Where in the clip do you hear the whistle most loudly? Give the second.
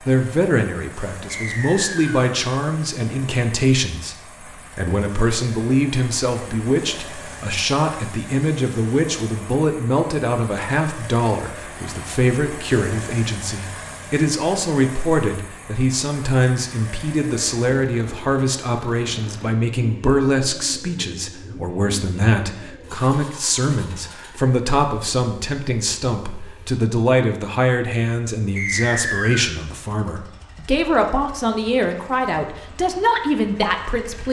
29 s.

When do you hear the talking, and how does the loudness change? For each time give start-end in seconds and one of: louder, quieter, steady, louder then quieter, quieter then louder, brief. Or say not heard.
0.0-34.2 steady.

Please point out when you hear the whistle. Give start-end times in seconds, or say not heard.
1.3-2.2, 28.6-29.6.